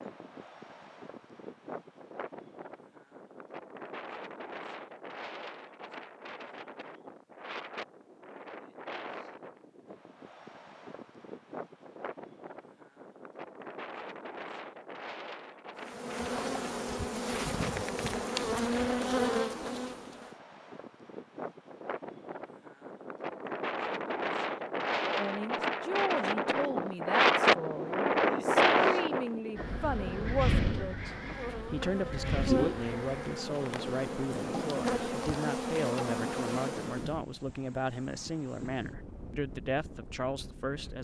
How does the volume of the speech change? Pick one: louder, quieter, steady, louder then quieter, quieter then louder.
steady.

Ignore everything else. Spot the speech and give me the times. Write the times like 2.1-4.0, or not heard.
25.1-40.9.